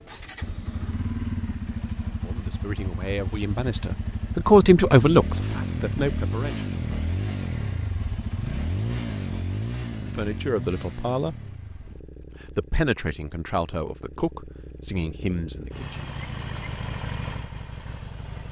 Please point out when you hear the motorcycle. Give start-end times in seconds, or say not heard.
0.0-18.4.